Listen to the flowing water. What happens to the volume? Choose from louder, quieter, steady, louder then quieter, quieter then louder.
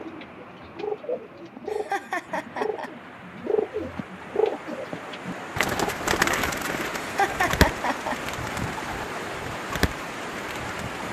louder.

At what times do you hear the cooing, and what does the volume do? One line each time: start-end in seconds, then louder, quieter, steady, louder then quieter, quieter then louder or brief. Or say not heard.
0.0-11.0 louder then quieter.